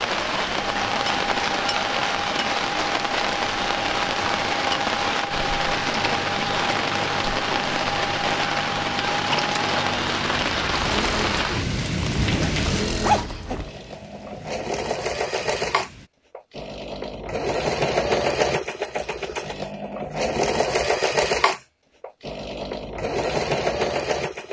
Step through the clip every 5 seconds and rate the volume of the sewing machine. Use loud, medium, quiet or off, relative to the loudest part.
medium, medium, medium, loud, loud.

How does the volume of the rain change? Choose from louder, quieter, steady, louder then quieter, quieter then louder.
quieter.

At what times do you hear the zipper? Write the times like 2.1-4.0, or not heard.
11.8-13.8.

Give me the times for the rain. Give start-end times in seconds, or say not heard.
0.0-16.1.